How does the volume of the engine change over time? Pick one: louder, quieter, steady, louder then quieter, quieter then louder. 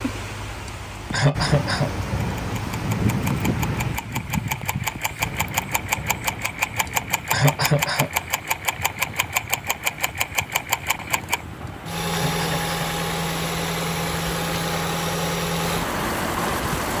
steady.